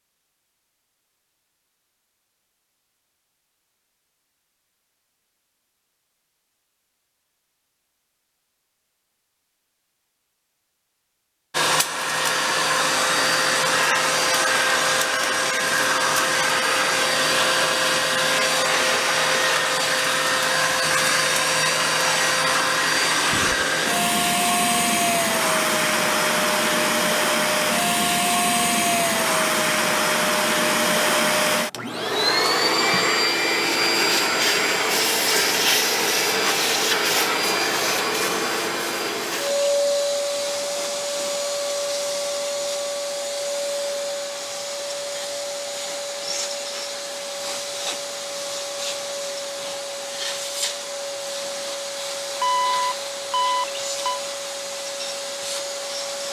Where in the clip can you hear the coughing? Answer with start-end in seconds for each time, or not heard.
not heard.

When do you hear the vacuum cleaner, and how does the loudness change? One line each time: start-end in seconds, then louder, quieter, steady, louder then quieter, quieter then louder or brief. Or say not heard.
11.5-56.2 quieter.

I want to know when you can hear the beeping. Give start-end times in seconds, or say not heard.
52.4-54.2.